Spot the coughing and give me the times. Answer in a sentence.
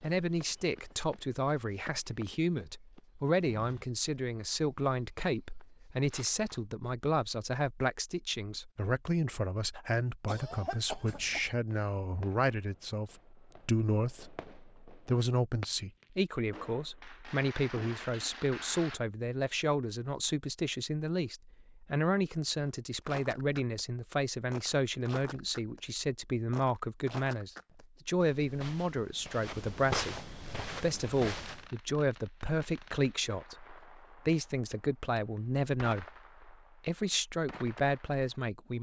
The coughing can be heard from 10.2 to 11.5 s.